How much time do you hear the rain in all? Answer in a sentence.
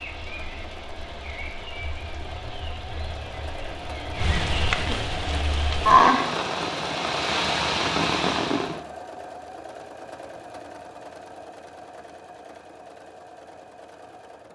You can hear the rain for 9 seconds altogether.